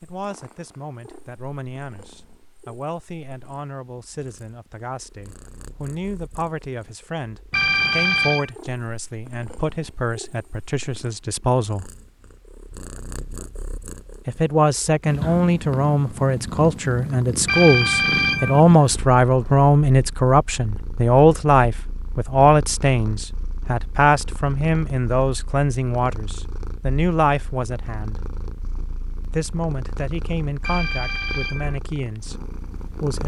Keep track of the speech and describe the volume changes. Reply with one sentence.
The loudness of the speech goes up, then down.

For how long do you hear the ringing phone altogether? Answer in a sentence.
You can hear the ringing phone for 3 seconds altogether.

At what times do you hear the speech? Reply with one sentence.
You can hear the speech from 0.0 to 11.9 s, from 14.2 to 28.1 s and from 29.2 to 33.2 s.